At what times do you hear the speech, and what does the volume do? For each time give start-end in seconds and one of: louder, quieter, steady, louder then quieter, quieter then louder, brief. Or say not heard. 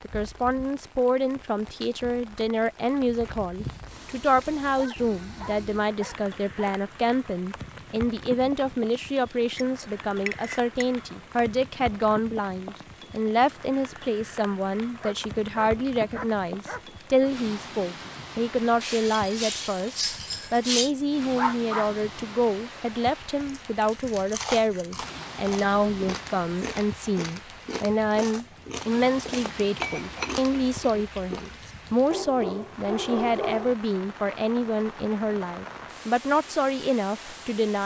0.0-37.8 steady.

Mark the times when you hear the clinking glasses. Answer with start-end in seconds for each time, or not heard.
9.6-10.8, 18.8-20.9, 29.8-30.9.